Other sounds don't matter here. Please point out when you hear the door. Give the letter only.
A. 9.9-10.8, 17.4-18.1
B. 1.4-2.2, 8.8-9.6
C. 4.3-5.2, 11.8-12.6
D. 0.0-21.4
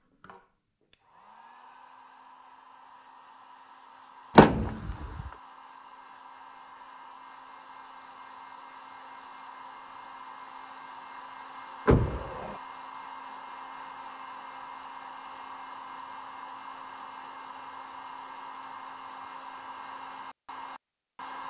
C.